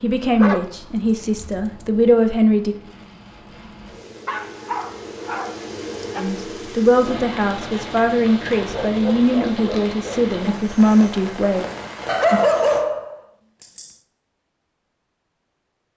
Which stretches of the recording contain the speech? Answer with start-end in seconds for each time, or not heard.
0.0-2.8, 6.2-11.7.